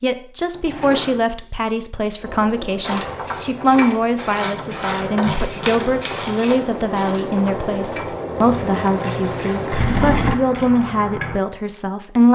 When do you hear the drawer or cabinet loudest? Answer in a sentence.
The volume of the drawer or cabinet peaks at 10 seconds.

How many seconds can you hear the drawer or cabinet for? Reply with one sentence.
You can hear the drawer or cabinet for 3 seconds altogether.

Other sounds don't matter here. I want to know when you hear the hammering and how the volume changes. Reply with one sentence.
You can't hear the hammering here.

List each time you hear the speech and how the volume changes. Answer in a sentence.
The speech can be heard from 0.0 to 12.3 s, at a steady volume.